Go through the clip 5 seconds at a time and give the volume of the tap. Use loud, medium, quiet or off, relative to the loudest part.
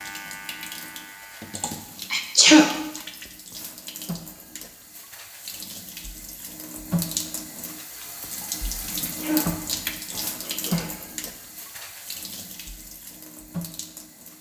medium, loud, loud.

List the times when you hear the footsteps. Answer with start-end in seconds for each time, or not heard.
not heard.